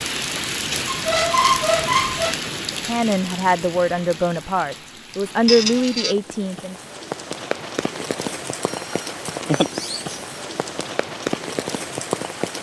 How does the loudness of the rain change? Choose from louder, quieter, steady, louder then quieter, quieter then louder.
quieter then louder.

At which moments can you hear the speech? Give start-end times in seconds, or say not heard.
2.7-6.8.